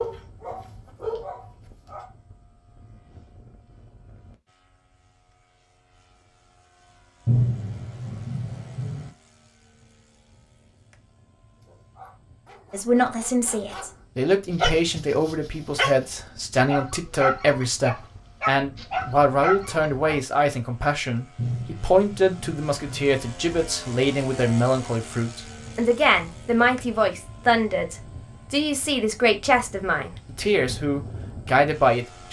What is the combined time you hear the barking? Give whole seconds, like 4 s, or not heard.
11 s.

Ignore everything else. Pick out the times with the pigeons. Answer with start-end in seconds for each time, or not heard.
not heard.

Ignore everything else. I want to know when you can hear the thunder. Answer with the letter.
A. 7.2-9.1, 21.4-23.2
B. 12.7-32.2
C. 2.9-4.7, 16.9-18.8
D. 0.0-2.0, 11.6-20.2
A.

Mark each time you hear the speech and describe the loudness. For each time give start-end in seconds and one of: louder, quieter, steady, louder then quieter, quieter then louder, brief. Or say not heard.
12.7-32.2 steady.